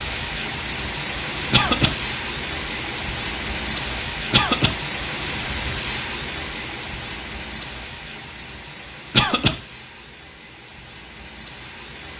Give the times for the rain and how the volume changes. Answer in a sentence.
You can hear the rain from 0.0 to 12.1 s, getting quieter.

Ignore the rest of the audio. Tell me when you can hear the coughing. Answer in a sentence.
You can hear the coughing from 1.5 to 1.9 s, from 4.3 to 4.8 s and from 9.1 to 9.6 s.